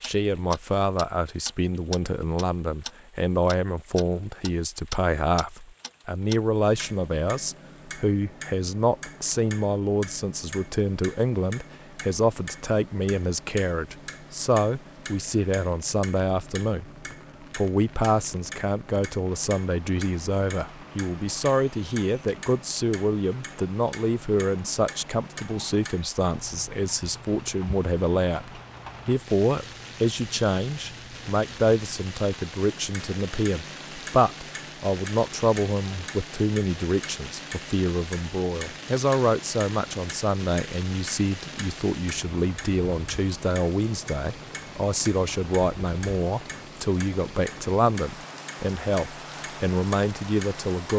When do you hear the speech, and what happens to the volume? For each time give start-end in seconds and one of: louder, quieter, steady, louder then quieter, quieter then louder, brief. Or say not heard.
0.0-50.9 steady.